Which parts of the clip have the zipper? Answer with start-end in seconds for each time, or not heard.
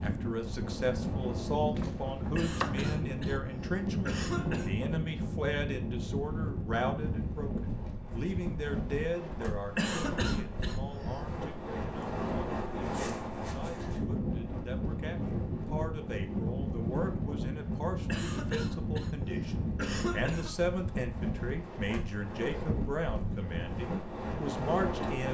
not heard.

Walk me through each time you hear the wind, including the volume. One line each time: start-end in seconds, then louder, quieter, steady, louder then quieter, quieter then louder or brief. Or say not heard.
0.0-25.2 steady.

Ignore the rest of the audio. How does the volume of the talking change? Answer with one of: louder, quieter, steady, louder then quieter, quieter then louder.
quieter then louder.